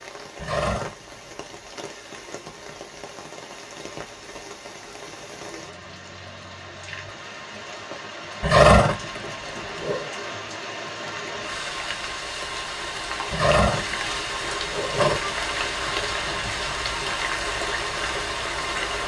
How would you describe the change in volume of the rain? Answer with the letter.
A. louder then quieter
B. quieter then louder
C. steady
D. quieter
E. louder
E.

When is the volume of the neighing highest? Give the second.
9 s.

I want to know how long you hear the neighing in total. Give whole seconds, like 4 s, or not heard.
5 s.